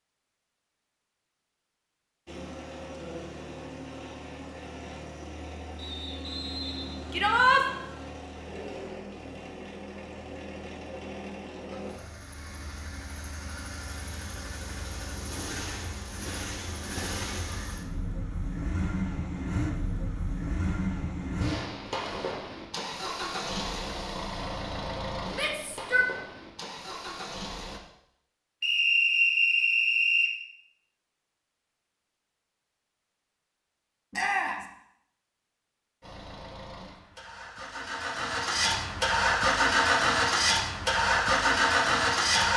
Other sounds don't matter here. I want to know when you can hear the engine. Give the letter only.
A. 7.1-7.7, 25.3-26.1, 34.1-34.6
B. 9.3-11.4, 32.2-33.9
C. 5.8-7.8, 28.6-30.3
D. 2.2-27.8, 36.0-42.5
D.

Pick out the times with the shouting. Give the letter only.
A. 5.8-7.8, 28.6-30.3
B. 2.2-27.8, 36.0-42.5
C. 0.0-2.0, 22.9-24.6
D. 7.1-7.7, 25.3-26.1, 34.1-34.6
D.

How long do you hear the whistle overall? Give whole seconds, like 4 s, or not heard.
4 s.